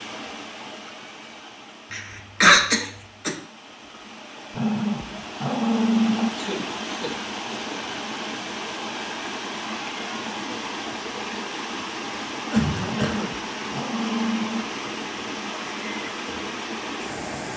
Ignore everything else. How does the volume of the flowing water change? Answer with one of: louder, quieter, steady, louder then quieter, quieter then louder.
louder.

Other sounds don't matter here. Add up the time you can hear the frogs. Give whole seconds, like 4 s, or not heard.
not heard.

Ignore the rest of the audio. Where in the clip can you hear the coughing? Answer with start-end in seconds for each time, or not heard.
1.9-3.4, 6.3-7.8, 12.5-13.3.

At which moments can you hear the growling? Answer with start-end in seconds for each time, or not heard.
4.5-6.3, 12.8-14.7.